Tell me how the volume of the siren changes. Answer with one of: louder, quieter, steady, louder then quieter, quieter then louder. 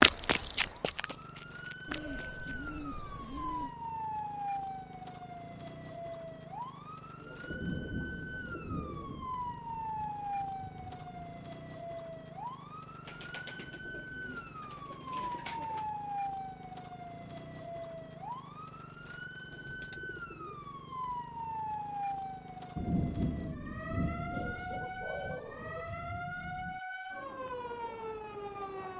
steady.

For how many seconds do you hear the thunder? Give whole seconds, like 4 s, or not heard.
8 s.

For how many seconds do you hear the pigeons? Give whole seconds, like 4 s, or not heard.
10 s.